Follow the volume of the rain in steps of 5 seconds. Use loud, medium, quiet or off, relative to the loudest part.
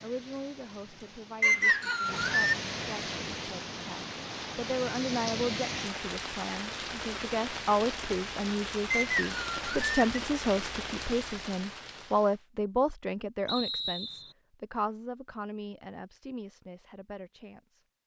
loud, loud, loud, off.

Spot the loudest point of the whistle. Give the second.
2 s.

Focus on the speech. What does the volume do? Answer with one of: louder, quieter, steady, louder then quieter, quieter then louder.
louder then quieter.